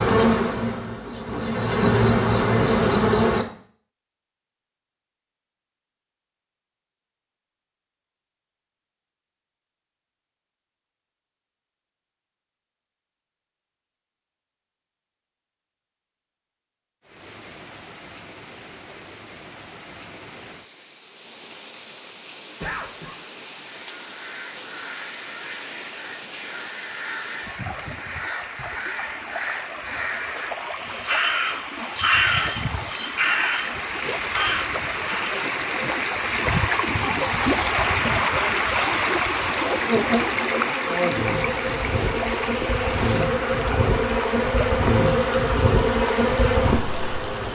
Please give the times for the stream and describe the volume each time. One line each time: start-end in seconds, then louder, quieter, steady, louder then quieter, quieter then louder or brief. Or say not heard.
17.0-47.4 louder then quieter.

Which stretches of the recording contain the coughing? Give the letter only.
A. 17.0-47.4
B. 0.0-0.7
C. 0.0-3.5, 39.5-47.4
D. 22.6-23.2
D.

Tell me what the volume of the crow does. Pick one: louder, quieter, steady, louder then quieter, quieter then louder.
louder.